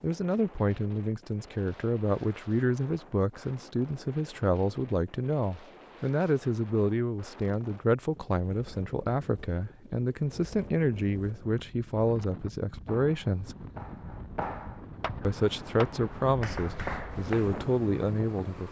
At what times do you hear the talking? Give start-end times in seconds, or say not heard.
0.0-13.6, 15.2-18.6.